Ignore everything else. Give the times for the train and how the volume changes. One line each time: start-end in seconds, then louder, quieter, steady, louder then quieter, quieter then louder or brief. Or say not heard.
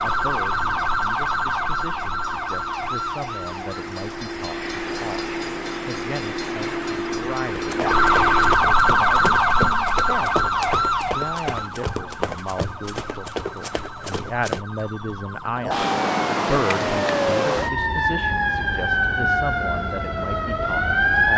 0.0-8.6 louder.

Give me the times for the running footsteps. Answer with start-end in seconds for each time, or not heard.
7.6-14.7.